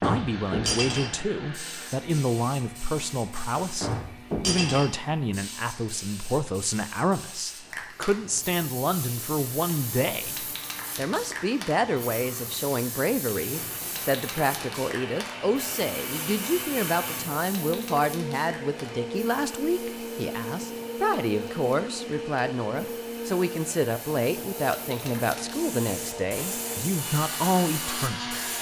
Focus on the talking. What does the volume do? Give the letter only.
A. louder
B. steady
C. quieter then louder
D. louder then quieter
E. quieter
B.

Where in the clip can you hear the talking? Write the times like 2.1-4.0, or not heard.
0.0-28.4.